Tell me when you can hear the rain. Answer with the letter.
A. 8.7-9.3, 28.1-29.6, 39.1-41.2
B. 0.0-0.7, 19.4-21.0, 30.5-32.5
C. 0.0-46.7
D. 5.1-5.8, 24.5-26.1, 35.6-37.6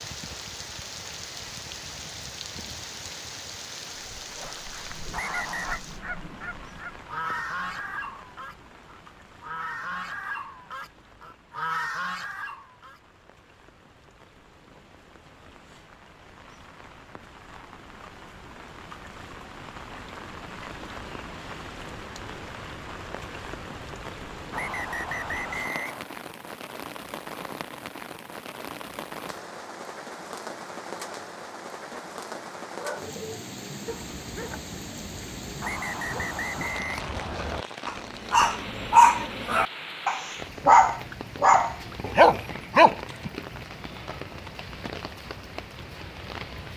C.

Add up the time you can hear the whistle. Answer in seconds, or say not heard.
4 s.